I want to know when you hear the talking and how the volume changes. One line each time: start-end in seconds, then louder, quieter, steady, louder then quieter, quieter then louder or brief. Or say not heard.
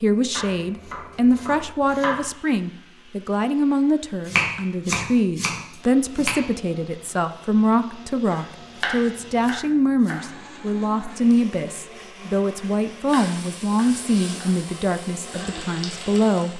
0.0-16.5 steady.